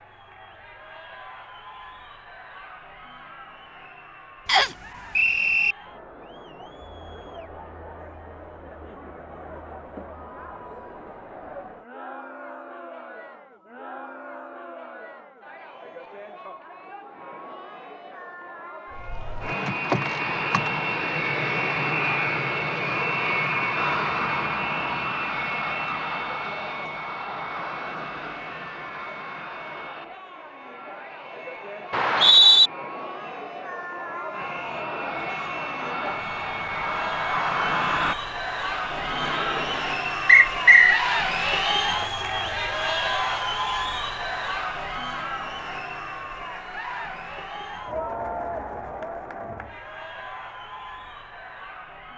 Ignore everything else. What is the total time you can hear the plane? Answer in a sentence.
You can hear the plane for 21 seconds altogether.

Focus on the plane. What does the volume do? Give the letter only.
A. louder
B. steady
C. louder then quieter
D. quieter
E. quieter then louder
E.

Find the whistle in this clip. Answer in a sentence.
You can hear the whistle from 4.5 to 5.8 s, from 31.9 to 32.7 s and from 40.2 to 41.0 s.